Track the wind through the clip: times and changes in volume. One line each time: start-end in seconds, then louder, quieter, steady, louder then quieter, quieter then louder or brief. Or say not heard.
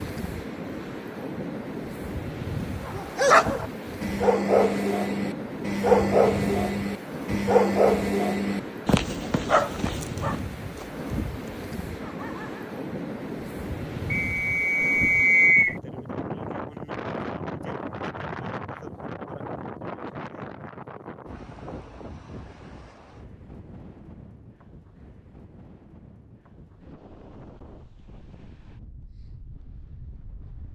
0.0-30.7 quieter.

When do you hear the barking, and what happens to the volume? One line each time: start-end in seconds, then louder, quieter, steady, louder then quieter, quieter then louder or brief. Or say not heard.
2.8-12.8 quieter.